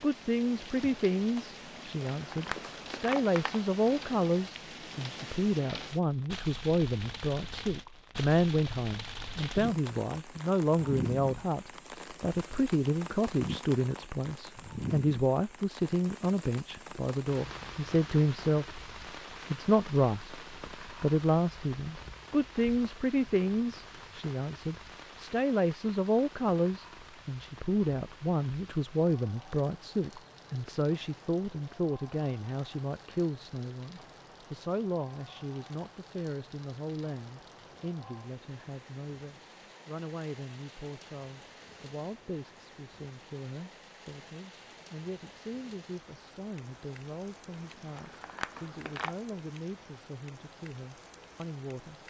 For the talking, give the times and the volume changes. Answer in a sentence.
You can hear the talking from 0.0 to 18.8 s, at a steady volume; and from 19.5 to 52.0 s, getting quieter.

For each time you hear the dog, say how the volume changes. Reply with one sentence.
The dog can't be heard in this clip.